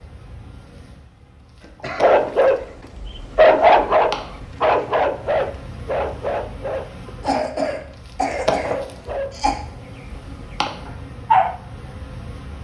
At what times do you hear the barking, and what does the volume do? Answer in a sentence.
The barking can be heard from 1.9 to 11.6 s, getting quieter.